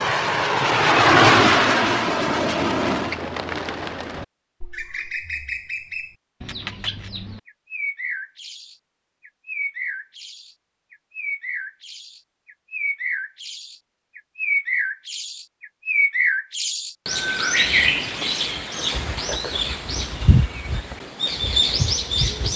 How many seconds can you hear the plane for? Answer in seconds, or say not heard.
3 s.